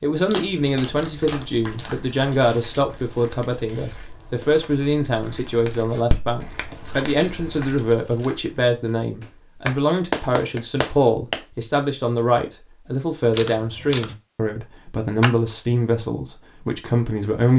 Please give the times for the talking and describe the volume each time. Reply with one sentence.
The talking can be heard from 0.0 to 17.5 s, at a steady volume.